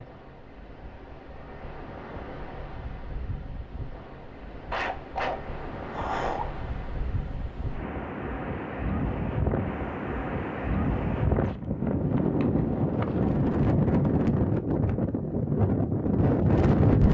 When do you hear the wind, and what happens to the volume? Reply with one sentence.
The wind can be heard from 0.0 to 17.0 s, getting louder.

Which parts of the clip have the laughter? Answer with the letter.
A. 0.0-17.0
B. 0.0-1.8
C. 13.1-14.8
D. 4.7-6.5
D.